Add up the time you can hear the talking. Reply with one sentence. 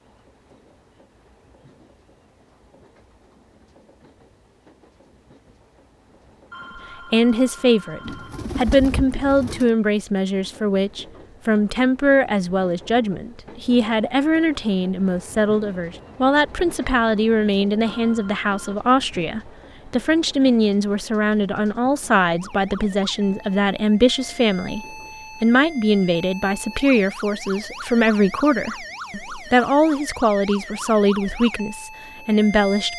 You can hear the talking for 26 seconds altogether.